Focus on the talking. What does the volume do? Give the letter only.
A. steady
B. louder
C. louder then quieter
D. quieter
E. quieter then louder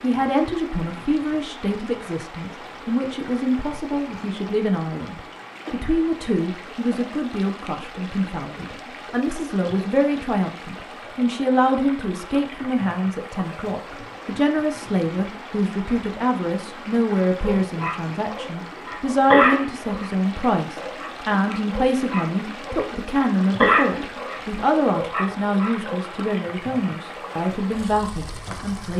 A.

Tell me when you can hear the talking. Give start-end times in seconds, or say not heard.
0.0-28.9.